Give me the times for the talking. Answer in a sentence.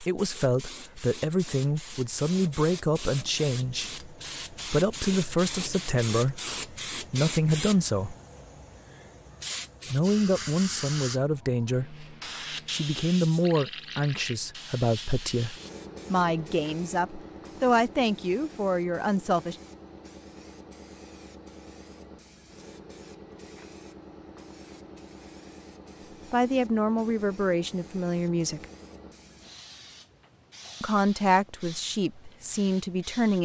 You can hear the talking from 0.0 to 8.2 s, from 9.8 to 12.1 s, from 12.7 to 19.6 s, from 26.3 to 28.6 s and from 30.8 to 33.4 s.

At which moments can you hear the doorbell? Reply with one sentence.
The doorbell can't be heard in this clip.